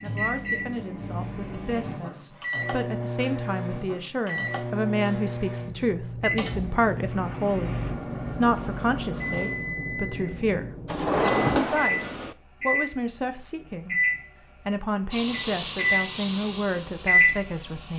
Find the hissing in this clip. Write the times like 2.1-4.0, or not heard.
15.1-17.9.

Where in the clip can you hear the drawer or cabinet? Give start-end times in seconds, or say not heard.
10.8-12.3.